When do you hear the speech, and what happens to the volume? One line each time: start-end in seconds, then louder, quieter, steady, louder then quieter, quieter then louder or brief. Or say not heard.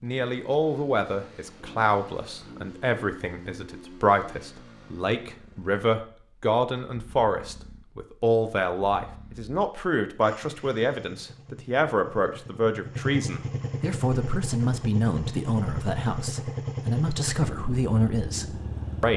0.0-19.1 steady.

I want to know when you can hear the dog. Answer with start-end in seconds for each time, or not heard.
not heard.